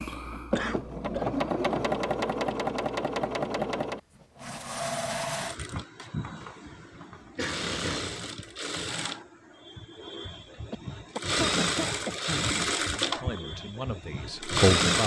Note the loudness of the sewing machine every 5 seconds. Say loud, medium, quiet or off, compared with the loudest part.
loud, medium, loud.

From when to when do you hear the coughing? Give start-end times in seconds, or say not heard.
0.6-1.2, 6.4-8.1, 10.7-12.5.